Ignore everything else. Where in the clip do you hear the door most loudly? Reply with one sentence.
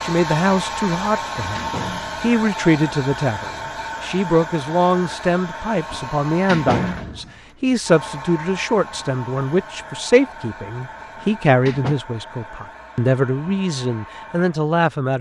The loudest moment of the door is at 7 seconds.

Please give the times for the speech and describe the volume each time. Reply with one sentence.
You can hear the speech from 0.0 to 15.1 s, at a steady volume.